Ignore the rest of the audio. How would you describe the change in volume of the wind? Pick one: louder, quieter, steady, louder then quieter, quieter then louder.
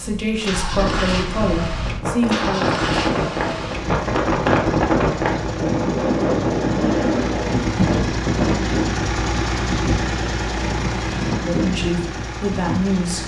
louder then quieter.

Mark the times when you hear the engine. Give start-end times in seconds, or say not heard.
0.0-13.2.